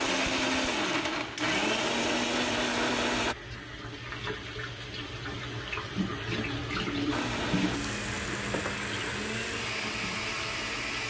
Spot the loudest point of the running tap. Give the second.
7 s.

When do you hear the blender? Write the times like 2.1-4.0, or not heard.
0.0-3.4, 7.1-11.0.